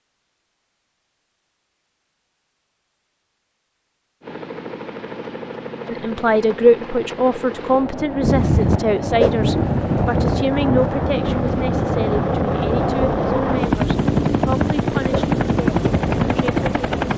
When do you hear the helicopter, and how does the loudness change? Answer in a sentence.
You can hear the helicopter from 4.2 to 17.1 s, getting louder.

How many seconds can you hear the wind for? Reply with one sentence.
The wind can be heard for 9 seconds in total.